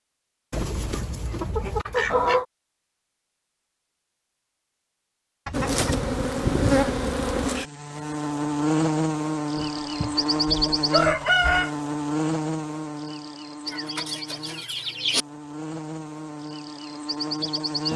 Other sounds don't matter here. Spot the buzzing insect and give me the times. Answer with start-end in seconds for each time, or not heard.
5.5-17.9.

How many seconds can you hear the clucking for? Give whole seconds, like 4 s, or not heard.
8 s.